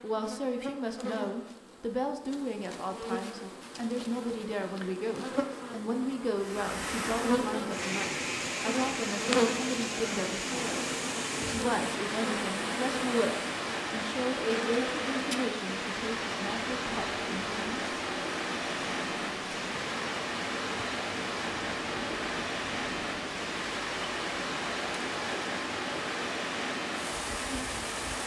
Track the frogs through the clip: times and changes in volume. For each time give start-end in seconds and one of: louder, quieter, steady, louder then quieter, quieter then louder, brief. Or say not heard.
not heard.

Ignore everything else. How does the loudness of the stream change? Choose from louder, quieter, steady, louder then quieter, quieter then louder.
steady.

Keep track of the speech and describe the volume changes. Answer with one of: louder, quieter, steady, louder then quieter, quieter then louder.
steady.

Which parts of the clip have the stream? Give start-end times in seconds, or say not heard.
6.3-28.2.